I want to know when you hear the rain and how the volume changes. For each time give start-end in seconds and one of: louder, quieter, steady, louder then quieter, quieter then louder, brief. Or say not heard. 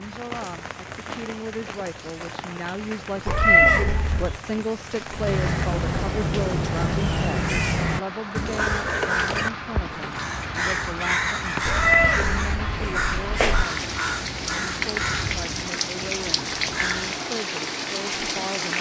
0.0-18.7 louder.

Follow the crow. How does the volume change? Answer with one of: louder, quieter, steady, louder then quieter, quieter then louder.
quieter.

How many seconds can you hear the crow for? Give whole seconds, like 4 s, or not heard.
12 s.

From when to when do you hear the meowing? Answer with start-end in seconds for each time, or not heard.
3.2-4.4, 11.7-13.7.